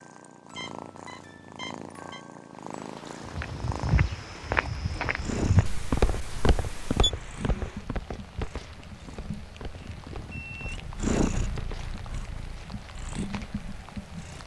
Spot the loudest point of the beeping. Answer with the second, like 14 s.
7 s.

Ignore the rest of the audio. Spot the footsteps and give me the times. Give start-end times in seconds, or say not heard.
3.2-13.6.